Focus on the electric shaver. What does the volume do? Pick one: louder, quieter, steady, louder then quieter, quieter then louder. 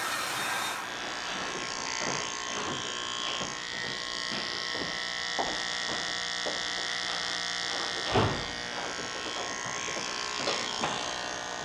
steady.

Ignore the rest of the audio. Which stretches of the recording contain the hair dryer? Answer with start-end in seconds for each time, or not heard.
0.0-1.4.